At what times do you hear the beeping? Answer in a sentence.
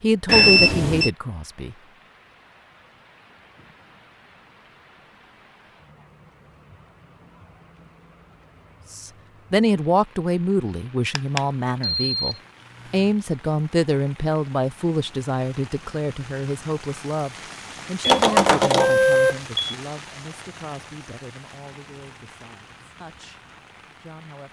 You can hear the beeping from 0.2 to 1.1 s, from 11.2 to 12.3 s and from 18.0 to 19.8 s.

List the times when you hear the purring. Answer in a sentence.
You can't hear the purring here.